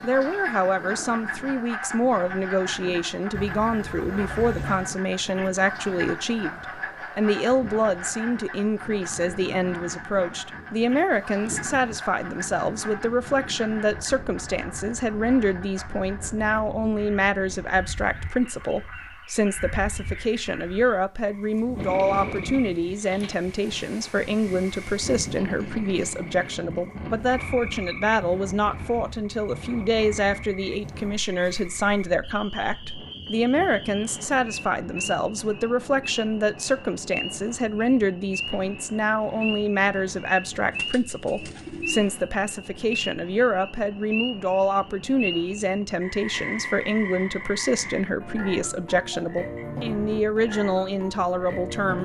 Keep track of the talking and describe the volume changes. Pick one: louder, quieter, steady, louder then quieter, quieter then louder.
steady.